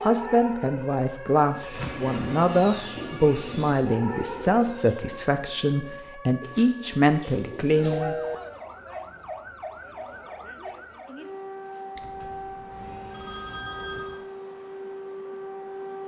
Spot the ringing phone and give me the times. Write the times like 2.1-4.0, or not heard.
1.6-3.6, 7.8-8.3, 11.9-14.2.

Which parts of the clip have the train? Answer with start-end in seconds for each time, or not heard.
not heard.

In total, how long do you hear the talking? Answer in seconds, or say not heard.
8 s.